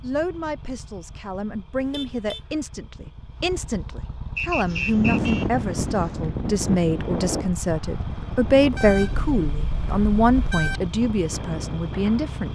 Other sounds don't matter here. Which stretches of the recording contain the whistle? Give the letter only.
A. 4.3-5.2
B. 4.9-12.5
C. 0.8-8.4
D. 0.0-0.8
A.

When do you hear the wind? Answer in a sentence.
The wind can be heard from 4.9 to 12.5 s.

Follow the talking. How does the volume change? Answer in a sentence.
The volume of the talking goes up.